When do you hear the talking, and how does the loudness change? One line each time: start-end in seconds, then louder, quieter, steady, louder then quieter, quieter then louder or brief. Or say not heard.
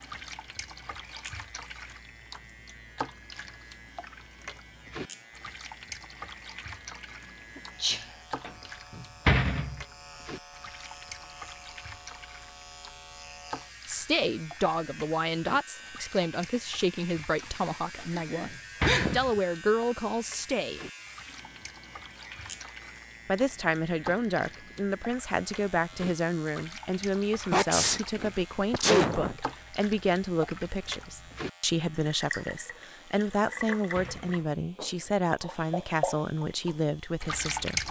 13.8-20.8 quieter then louder
23.2-37.8 steady.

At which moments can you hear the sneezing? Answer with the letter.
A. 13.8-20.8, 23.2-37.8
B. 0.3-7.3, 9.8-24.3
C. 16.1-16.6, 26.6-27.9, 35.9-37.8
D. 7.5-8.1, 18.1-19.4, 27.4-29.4
D.